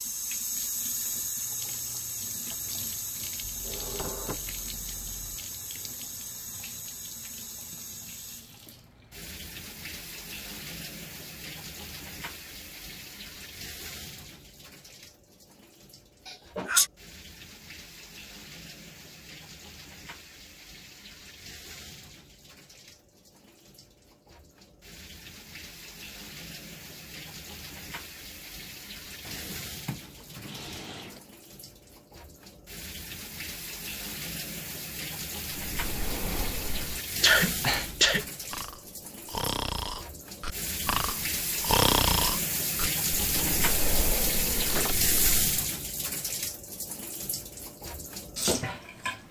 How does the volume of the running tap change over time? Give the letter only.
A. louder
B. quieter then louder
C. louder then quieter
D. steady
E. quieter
B.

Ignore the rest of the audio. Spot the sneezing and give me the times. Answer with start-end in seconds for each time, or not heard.
16.2-16.9, 37.2-38.2.